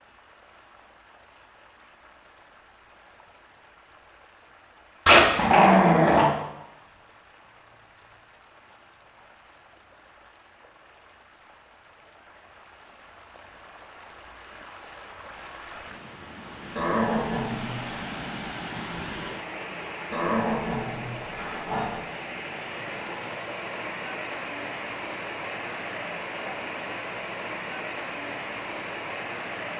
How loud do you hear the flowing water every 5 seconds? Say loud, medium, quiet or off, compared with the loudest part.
quiet, quiet, quiet, loud, loud, loud.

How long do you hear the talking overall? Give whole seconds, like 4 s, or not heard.
not heard.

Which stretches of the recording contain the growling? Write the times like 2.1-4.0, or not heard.
5.0-6.3, 16.8-17.9, 20.1-22.1.